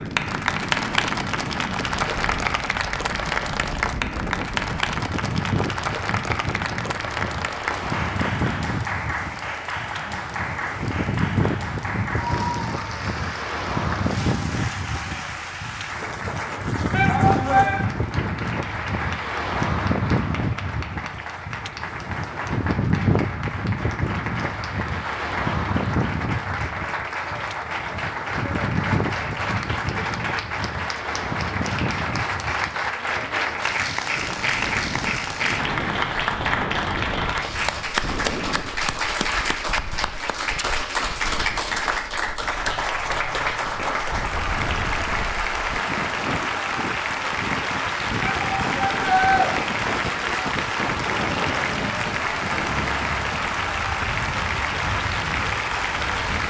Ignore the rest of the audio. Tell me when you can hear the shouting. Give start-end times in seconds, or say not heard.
16.9-17.9, 48.2-49.5.